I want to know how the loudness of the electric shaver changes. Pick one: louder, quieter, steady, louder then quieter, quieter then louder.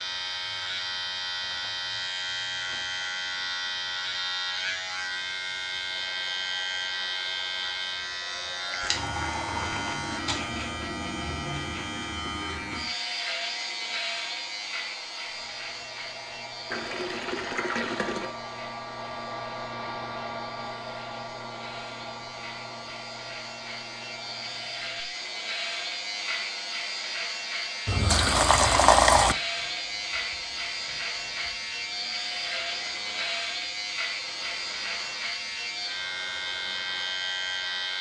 quieter then louder.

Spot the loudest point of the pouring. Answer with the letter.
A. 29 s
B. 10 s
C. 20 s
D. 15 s
A.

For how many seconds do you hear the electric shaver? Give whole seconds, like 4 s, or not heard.
38 s.